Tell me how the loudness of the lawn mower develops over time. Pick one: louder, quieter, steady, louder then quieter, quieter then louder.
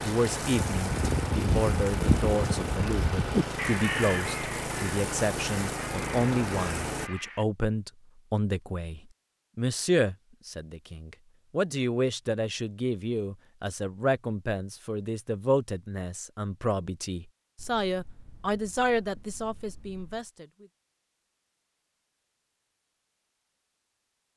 steady.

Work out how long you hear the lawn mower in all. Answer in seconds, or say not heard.
7 s.